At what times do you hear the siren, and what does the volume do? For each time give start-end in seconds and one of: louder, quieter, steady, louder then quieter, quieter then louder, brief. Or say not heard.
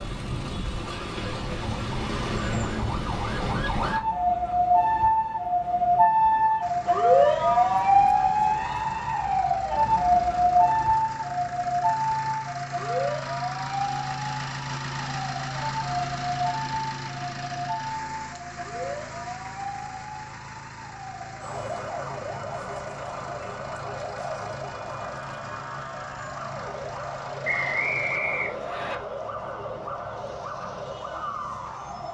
0.0-32.0 quieter.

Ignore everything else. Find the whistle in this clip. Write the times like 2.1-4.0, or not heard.
27.4-28.9.